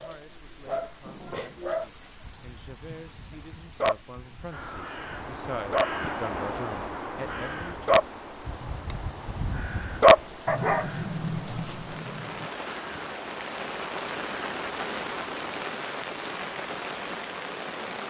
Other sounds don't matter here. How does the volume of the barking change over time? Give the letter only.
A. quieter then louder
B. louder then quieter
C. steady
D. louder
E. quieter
B.